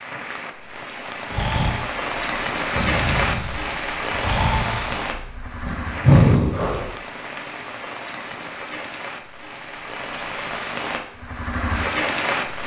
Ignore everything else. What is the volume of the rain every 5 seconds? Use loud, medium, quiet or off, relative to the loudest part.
loud, medium, loud.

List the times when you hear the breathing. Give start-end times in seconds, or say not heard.
1.3-6.8.